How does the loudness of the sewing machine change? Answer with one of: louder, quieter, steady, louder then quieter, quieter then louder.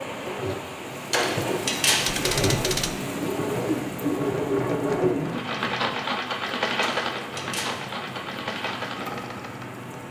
louder then quieter.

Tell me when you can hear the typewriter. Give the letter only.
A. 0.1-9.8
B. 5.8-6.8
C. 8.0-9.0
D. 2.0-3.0
D.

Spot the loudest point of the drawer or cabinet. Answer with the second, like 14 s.
2 s.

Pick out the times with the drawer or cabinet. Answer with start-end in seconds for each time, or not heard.
1.1-2.1, 6.8-7.8.